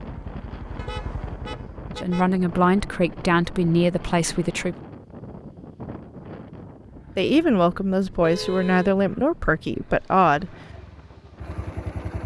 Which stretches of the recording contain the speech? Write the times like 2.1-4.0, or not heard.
1.9-4.8, 7.2-10.5.